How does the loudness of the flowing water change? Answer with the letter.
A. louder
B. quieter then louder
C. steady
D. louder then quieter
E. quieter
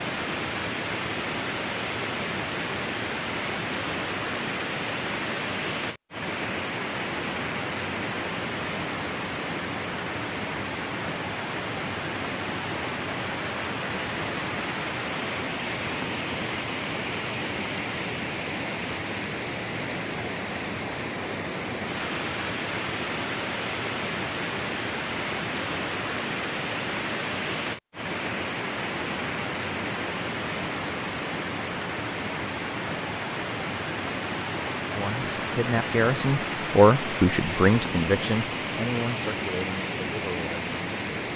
C.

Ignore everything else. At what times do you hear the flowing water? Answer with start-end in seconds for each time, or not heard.
0.0-41.3.